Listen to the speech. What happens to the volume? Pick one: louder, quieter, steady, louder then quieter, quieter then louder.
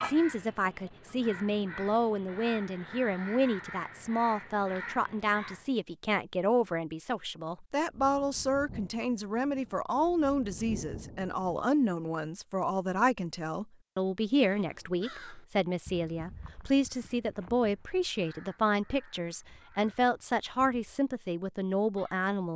steady.